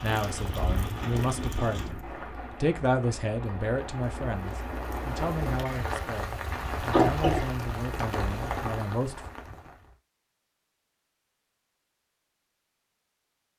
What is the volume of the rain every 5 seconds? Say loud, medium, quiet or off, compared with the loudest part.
loud, loud, off.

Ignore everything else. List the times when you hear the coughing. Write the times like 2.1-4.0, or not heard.
6.5-7.5.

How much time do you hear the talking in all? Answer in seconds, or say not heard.
9 s.